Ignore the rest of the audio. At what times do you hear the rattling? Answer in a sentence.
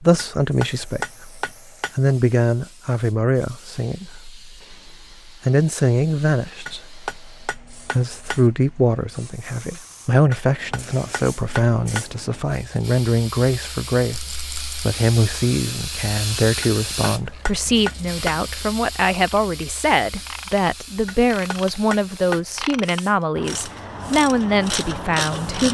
The rattling can be heard from 14.1 to 14.8 s.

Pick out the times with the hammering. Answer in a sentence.
You can hear the hammering from 0.1 to 1.9 s, from 6.7 to 8.4 s, from 10.3 to 12.1 s, from 16.6 to 18.4 s and from 21.1 to 22.8 s.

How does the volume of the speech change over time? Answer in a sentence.
The loudness of the speech stays about the same.